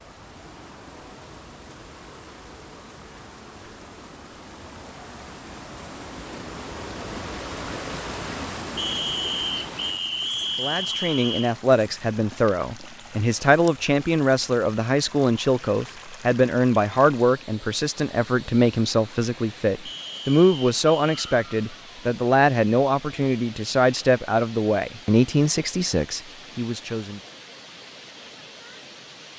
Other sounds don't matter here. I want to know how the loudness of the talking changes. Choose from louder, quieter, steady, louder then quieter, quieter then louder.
steady.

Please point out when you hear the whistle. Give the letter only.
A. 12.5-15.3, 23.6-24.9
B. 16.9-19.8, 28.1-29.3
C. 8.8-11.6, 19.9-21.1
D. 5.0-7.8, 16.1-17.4
C.